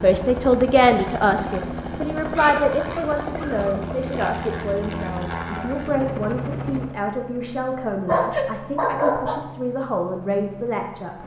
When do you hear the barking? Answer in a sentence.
The barking can be heard from 2.4 to 3.7 s and from 8.1 to 9.4 s.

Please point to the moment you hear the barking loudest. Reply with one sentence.
The loudest moment of the barking is at 9 seconds.